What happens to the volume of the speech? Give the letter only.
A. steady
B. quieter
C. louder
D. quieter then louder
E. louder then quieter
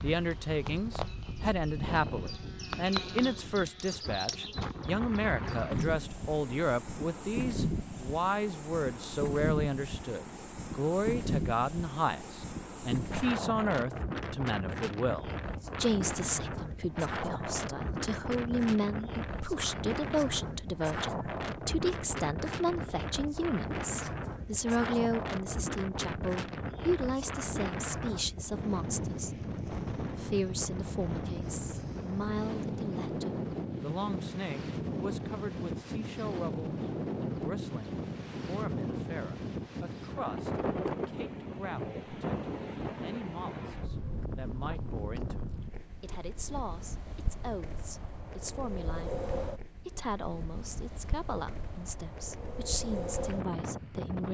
B.